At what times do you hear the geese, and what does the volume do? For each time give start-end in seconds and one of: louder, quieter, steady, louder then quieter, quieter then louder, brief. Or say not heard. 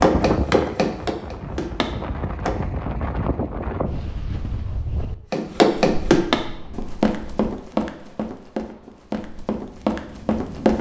not heard.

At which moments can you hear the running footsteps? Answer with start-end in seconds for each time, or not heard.
0.0-2.5, 5.3-10.7.